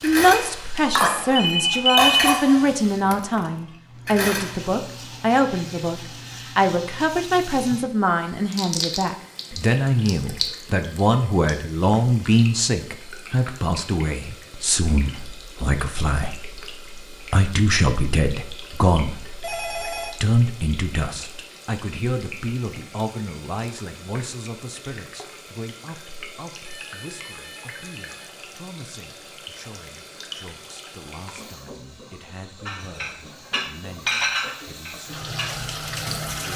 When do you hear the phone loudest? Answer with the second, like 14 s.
2 s.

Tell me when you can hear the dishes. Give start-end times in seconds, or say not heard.
0.0-4.7, 32.6-36.5.